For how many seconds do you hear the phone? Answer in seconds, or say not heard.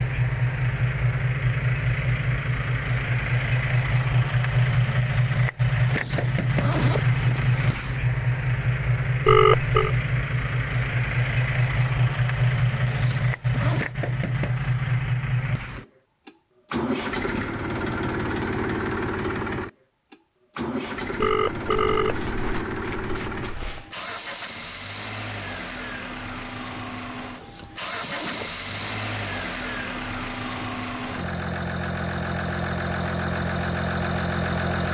3 s.